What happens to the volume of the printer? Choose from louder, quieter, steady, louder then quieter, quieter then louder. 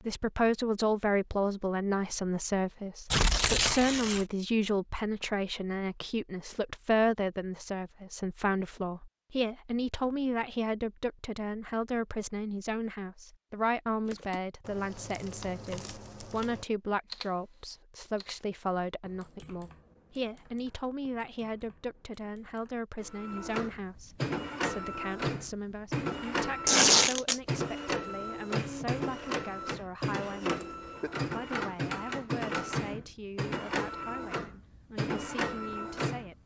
steady.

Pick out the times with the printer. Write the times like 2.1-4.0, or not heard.
23.0-36.4.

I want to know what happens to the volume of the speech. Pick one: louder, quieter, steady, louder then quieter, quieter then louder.
quieter.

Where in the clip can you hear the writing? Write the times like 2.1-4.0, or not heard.
not heard.